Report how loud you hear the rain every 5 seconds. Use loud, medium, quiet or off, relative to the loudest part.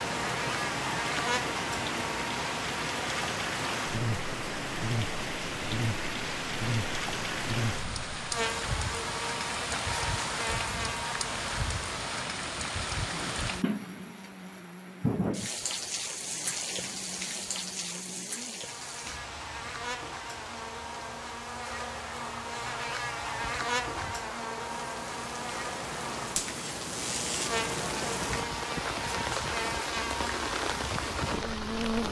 loud, loud, loud, loud, quiet, loud, loud.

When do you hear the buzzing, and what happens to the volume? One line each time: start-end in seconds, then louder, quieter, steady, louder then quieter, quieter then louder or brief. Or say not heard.
0.0-32.0 quieter then louder.